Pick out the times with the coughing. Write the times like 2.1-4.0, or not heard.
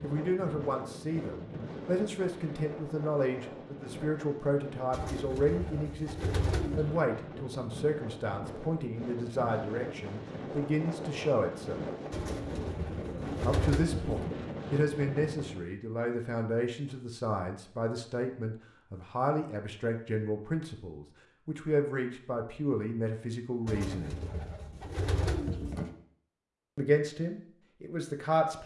not heard.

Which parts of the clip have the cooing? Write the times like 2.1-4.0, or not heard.
4.9-7.0, 12.1-14.3, 23.6-25.9.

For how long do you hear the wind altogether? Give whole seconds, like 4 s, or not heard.
16 s.